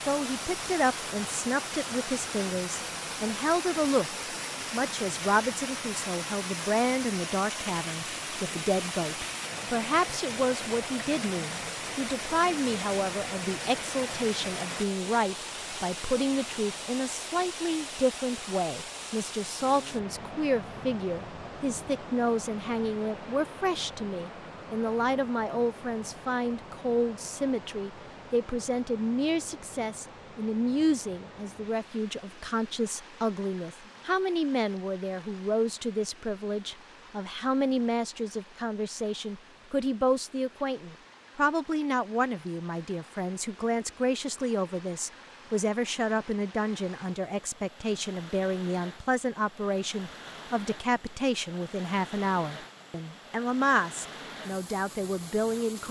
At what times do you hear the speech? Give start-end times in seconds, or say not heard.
0.0-55.8.